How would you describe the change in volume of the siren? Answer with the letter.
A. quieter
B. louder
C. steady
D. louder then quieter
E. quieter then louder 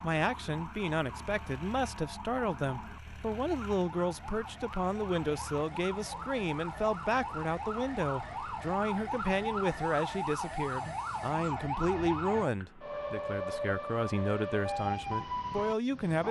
B.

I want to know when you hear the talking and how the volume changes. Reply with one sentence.
The talking can be heard from 0.0 to 16.2 s, at a steady volume.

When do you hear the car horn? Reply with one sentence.
The car horn can't be heard in this clip.